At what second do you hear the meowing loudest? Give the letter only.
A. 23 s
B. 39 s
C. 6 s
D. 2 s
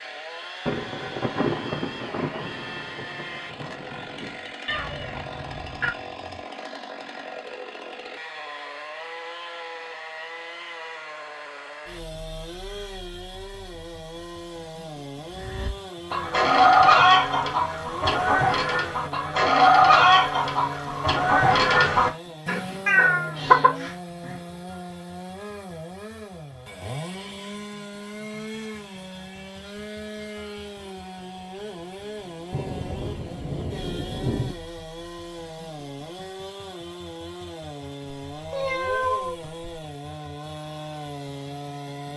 A.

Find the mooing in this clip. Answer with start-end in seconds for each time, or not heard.
not heard.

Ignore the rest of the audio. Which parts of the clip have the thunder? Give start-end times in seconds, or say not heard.
0.7-4.3, 32.5-34.5.